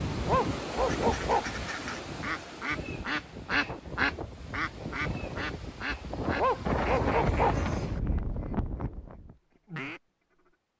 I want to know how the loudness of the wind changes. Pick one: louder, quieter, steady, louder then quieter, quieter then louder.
quieter then louder.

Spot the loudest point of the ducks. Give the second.
4 s.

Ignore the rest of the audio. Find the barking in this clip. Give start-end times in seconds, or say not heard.
0.2-1.7, 6.3-7.7.